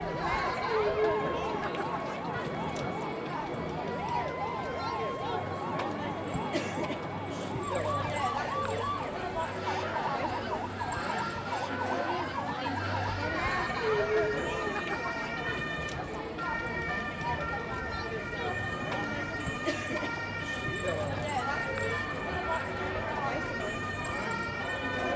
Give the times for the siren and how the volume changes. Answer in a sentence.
You can hear the siren from 0.0 to 25.1 s, at a steady volume.